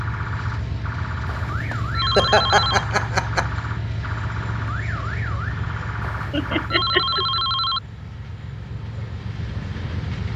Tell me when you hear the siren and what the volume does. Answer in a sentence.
You can hear the siren from 0.0 to 6.7 s, at a steady volume.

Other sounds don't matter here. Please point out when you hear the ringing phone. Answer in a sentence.
You can hear the ringing phone from 1.2 to 2.9 s and from 6.0 to 7.8 s.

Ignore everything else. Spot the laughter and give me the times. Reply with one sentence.
The laughter can be heard from 1.7 to 3.5 s and from 6.3 to 7.4 s.